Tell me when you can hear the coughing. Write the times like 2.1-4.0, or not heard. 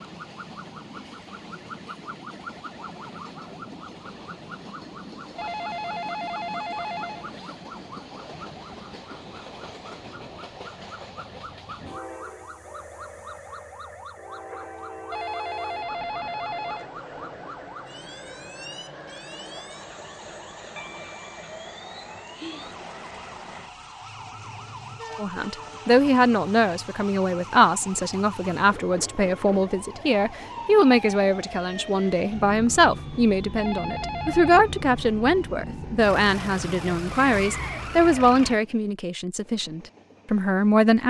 not heard.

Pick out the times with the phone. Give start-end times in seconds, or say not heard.
5.3-7.3, 15.1-16.9, 33.5-34.6.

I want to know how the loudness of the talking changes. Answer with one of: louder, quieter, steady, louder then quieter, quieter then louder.
steady.